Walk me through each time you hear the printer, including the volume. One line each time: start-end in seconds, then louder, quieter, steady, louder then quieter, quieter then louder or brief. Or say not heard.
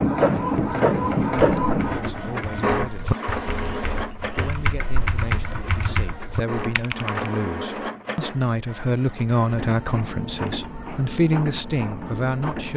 0.0-12.7 quieter.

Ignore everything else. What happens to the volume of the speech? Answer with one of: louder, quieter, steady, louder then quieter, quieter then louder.
louder.